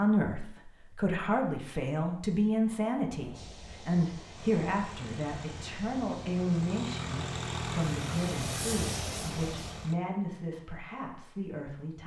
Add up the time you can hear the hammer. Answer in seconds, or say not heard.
not heard.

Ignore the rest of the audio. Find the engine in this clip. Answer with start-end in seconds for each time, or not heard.
4.3-9.9.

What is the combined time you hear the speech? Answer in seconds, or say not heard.
12 s.